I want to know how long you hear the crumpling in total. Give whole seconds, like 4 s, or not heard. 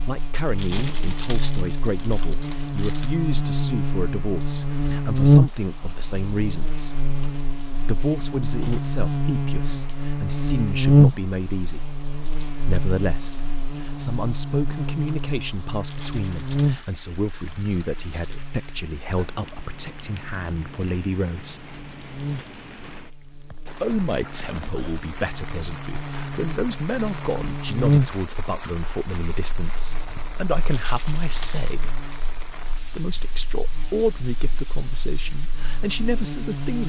7 s.